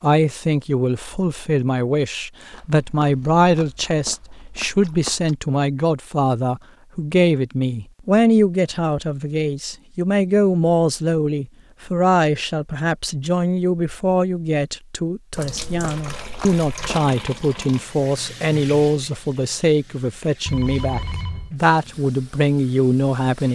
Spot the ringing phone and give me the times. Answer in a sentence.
You can hear the ringing phone from 20.4 to 21.6 s.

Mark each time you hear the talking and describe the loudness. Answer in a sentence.
The talking can be heard from 0.0 to 23.5 s, at a steady volume.